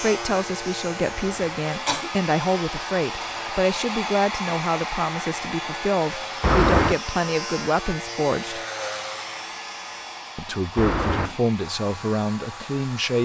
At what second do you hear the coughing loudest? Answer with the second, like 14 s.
7 s.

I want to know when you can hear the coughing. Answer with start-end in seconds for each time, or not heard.
1.1-2.1, 6.4-7.0, 10.8-11.4.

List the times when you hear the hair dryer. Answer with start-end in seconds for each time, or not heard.
0.2-13.2.